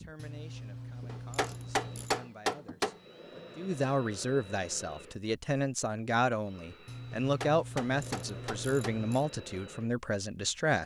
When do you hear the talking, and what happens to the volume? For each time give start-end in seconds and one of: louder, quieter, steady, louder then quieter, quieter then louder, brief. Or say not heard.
0.0-10.8 louder.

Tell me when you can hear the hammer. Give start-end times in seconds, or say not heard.
1.1-3.0, 7.1-9.0.